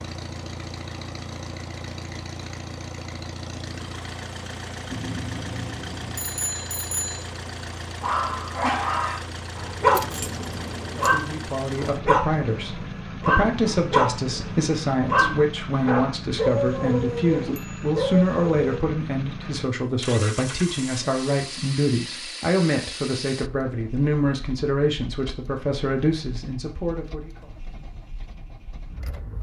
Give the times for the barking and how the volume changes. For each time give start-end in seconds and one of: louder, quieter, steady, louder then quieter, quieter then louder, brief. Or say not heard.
8.0-18.8 steady.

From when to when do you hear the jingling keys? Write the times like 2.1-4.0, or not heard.
9.9-11.2.